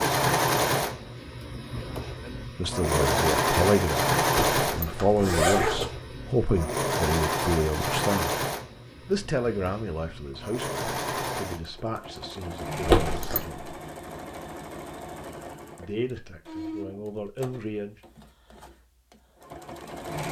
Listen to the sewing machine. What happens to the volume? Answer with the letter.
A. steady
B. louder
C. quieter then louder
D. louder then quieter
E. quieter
E.